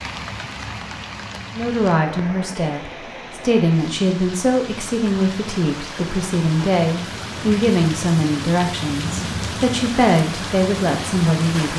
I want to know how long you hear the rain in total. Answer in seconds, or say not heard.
12 s.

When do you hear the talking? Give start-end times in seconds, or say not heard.
1.5-11.7.